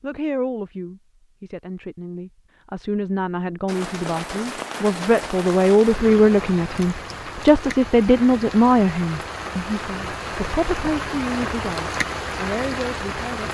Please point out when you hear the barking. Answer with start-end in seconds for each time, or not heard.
not heard.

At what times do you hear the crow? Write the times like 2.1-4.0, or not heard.
not heard.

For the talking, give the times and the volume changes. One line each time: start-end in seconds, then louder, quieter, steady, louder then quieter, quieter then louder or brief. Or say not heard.
0.0-13.4 louder then quieter.